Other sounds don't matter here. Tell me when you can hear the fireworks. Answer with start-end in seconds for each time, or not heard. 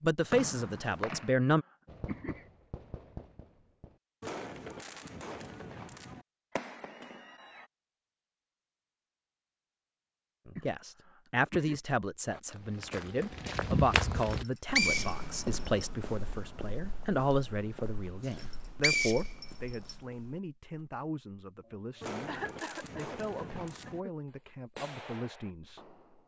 1.9-7.7, 22.0-26.2.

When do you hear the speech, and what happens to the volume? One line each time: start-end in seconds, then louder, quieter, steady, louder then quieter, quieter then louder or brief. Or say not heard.
0.0-1.6 brief
10.4-25.9 quieter.